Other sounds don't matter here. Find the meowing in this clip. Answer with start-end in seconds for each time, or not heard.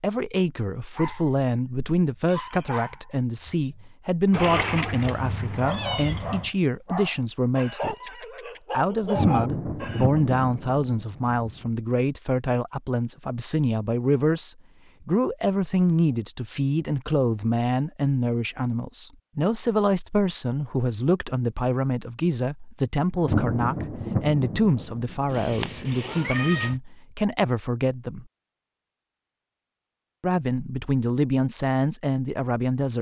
4.3-6.5, 25.2-26.8.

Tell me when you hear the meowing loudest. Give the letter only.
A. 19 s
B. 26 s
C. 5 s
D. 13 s
C.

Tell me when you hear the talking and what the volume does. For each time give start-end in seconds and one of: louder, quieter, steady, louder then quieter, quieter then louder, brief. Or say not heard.
0.0-28.2 steady
30.2-32.9 brief.